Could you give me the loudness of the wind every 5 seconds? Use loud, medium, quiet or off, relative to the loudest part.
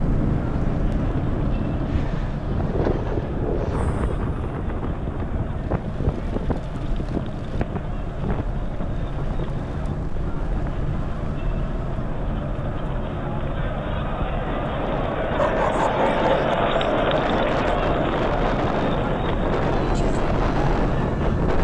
loud, medium, medium, loud, loud.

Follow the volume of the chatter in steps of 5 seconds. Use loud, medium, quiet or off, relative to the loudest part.
quiet, quiet, medium, loud, medium.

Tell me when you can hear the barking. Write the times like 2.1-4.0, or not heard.
15.3-16.6.